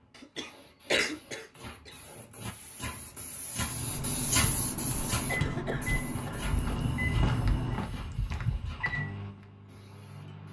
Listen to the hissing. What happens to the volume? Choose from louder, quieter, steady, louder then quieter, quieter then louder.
louder then quieter.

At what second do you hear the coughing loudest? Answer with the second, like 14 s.
1 s.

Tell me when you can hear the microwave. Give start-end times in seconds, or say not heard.
3.5-10.4.